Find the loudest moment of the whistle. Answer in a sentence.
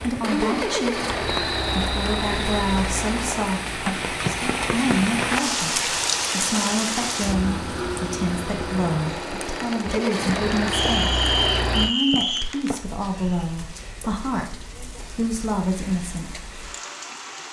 The volume of the whistle peaks at 11 seconds.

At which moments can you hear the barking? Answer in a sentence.
The barking can't be heard in this clip.